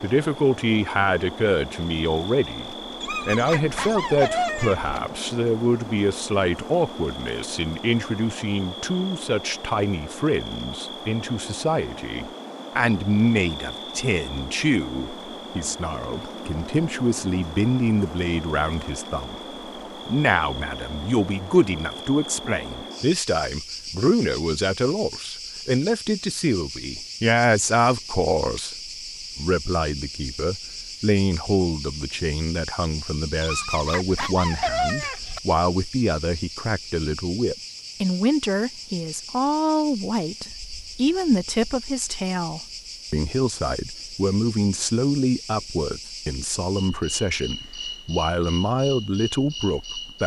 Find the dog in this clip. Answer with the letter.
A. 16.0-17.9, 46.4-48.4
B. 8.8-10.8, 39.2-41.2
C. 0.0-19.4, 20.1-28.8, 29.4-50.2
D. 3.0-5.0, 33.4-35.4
D.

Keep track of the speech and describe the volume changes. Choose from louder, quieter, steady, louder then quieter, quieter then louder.
steady.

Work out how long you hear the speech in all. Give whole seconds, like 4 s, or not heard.
49 s.